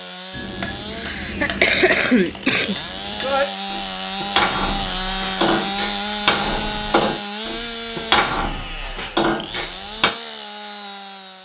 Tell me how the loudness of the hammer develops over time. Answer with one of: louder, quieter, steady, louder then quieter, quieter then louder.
louder.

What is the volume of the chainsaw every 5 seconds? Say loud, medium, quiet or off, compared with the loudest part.
loud, loud, medium.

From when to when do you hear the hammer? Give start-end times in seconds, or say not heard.
0.3-10.1.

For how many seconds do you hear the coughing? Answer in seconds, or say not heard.
2 s.